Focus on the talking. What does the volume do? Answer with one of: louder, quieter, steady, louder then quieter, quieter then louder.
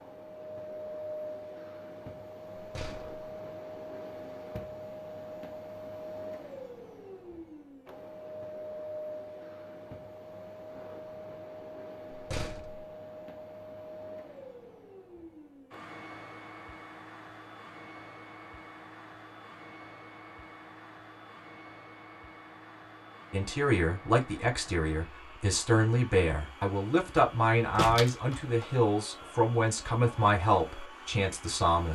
steady.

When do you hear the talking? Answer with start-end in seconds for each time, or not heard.
23.3-31.9.